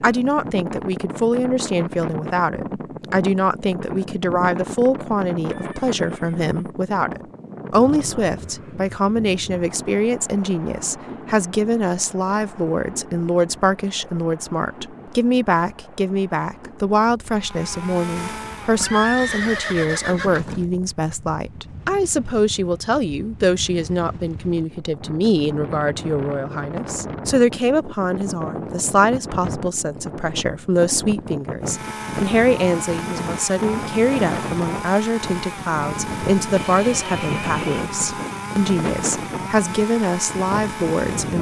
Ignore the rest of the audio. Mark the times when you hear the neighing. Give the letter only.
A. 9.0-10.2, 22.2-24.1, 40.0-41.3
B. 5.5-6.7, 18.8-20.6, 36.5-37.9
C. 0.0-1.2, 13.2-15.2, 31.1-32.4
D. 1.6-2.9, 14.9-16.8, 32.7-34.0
B.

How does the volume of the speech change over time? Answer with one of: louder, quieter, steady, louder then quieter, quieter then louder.
steady.